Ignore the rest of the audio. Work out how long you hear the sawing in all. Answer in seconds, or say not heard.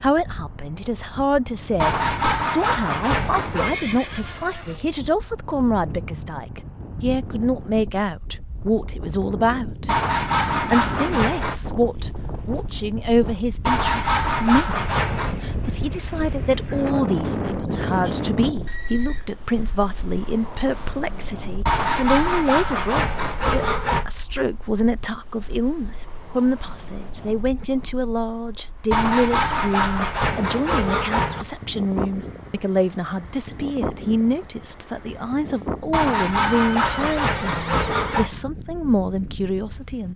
13 s.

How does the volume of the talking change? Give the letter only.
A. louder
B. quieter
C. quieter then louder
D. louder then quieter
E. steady
E.